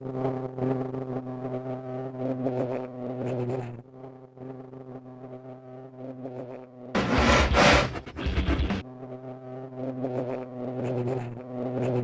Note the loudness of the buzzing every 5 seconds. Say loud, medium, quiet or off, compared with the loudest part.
loud, medium, loud.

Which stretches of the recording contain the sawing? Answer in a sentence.
You can hear the sawing from 6.9 to 8.8 s.